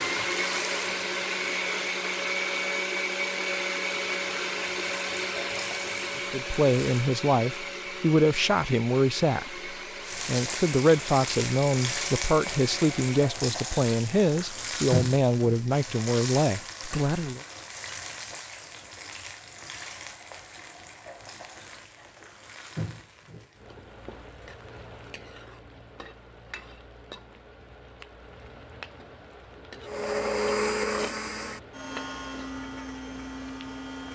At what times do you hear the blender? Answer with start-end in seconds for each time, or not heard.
0.0-13.3, 29.8-34.1.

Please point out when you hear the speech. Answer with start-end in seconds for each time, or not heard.
6.2-17.4.